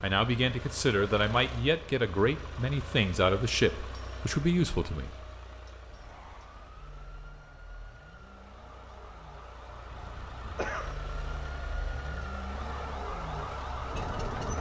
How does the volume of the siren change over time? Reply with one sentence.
The volume of the siren goes up.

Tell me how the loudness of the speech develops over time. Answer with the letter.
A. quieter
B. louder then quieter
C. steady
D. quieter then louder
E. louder
C.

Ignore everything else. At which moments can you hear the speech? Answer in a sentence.
You can hear the speech from 0.0 to 5.2 s.